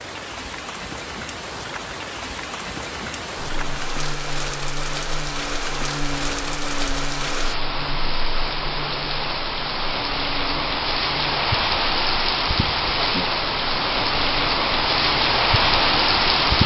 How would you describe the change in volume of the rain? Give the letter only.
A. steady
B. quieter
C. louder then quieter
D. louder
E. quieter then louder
D.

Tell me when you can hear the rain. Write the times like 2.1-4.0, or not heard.
0.0-16.6.